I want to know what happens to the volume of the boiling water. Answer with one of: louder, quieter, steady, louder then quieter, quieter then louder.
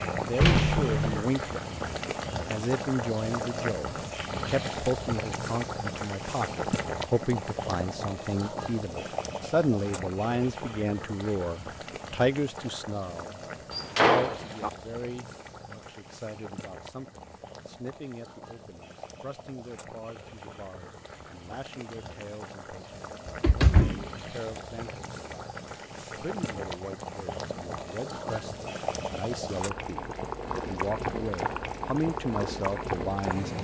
quieter then louder.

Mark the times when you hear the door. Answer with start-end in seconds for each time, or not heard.
0.4-1.2, 13.7-14.7, 23.2-24.1.